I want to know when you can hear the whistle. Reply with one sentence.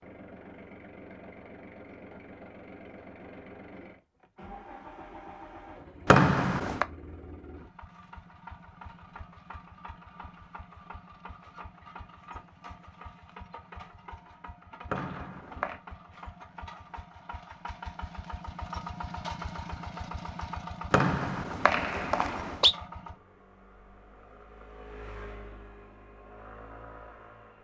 You can hear the whistle from 6.0 to 6.8 s, from 14.9 to 15.8 s and from 20.9 to 22.8 s.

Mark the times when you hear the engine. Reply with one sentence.
You can hear the engine from 0.0 to 27.5 s.